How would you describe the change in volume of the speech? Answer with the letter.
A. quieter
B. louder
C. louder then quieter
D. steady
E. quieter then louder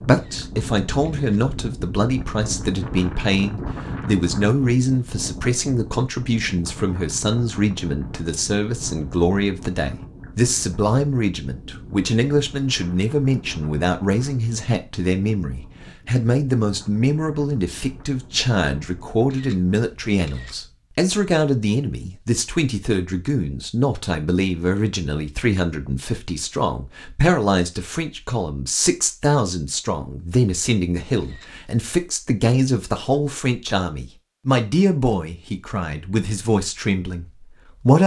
D.